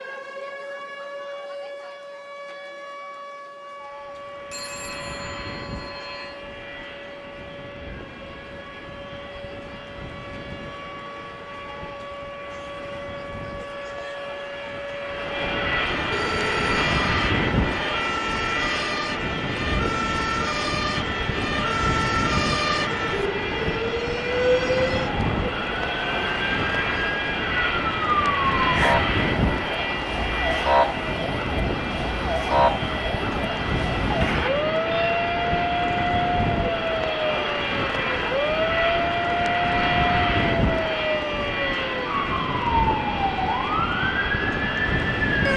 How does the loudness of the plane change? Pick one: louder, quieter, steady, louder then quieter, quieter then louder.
louder.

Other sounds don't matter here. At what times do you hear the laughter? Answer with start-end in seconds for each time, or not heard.
not heard.